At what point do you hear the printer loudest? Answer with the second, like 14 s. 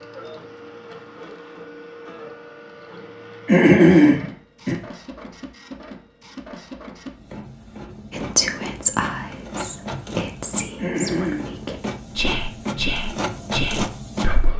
14 s.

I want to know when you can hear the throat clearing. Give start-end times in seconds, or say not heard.
3.5-4.8, 10.8-11.4.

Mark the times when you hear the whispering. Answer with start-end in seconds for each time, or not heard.
8.1-14.5.